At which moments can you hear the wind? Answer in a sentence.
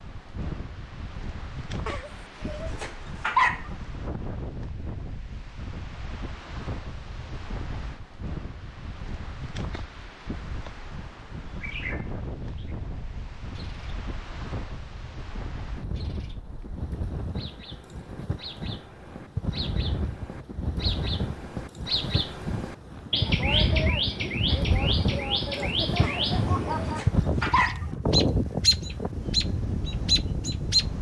The wind can be heard from 0.0 to 30.9 s.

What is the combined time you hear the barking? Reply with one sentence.
The barking can be heard for 4 seconds in total.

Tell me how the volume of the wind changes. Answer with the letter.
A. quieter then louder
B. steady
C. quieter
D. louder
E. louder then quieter
D.